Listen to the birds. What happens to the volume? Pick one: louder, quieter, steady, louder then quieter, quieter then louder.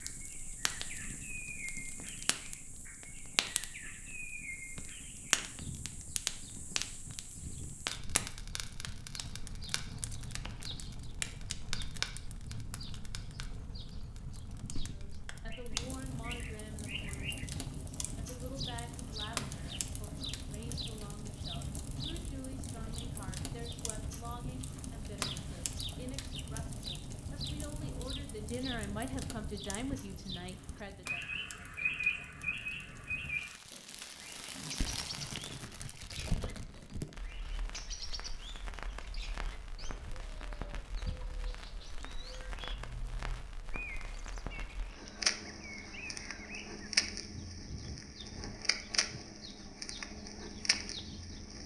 louder then quieter.